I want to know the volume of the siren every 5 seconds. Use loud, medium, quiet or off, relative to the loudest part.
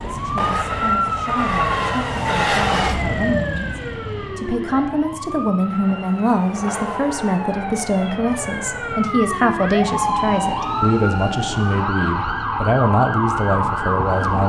loud, medium, loud.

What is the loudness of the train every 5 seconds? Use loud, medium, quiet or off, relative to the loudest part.
loud, medium, medium.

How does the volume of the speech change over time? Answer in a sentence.
The loudness of the speech goes up.